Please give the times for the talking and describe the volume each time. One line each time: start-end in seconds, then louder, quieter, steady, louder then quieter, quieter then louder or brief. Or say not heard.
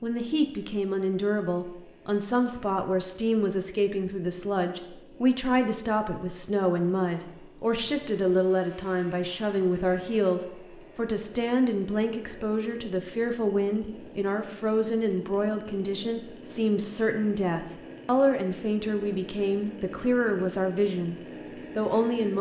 0.0-21.1 steady
21.8-22.3 brief.